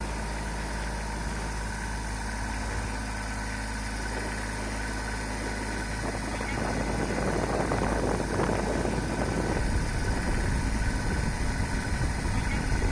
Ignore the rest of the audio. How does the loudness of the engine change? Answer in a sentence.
The volume of the engine stays about the same.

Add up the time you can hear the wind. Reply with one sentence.
You can hear the wind for 13 seconds altogether.